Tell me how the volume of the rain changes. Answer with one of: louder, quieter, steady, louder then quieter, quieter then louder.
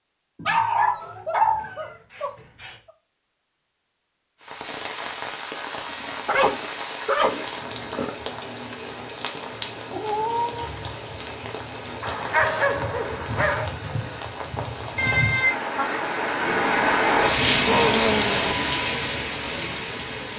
louder.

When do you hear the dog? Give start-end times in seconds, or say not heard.
0.5-2.8, 5.8-8.2, 12.0-13.7, 16.6-18.6.